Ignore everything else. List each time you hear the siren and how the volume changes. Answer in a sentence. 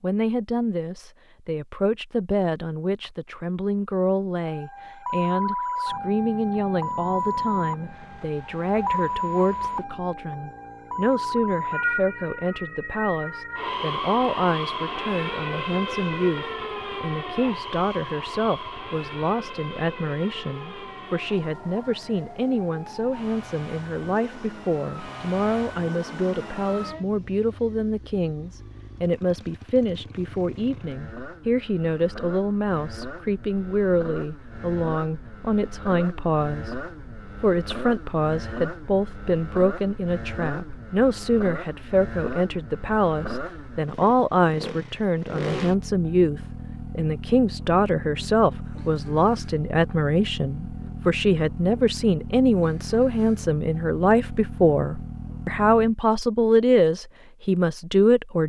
You can hear the siren from 4.4 to 27.1 s, getting quieter.